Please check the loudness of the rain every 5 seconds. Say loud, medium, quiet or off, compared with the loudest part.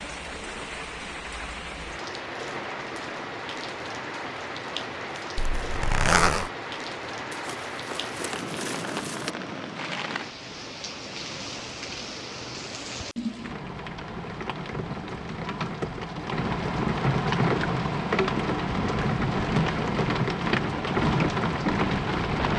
medium, medium, medium, loud, loud.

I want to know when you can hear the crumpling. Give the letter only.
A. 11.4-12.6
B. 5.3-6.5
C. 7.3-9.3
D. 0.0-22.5
C.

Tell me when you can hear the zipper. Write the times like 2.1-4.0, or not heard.
5.3-6.5.